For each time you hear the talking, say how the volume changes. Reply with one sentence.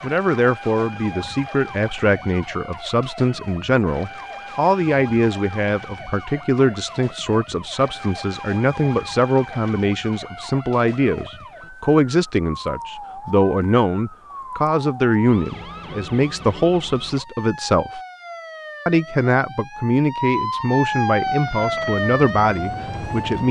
The talking can be heard from 0.0 to 18.0 s, at a steady volume; and from 18.9 to 23.4 s, at a steady volume.